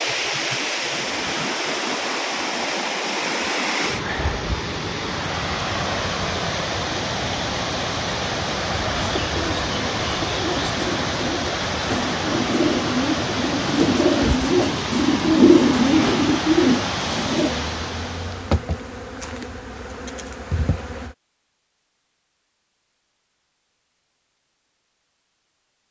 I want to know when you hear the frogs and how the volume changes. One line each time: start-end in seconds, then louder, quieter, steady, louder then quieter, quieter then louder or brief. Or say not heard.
not heard.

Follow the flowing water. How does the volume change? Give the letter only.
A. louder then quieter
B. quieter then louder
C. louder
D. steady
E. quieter
D.